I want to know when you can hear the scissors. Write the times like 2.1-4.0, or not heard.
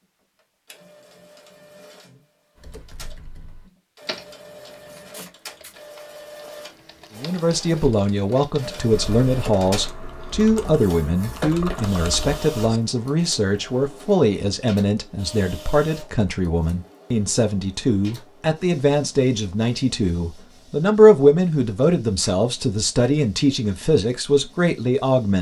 4.8-5.8.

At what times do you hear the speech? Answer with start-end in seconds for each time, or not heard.
7.2-25.3.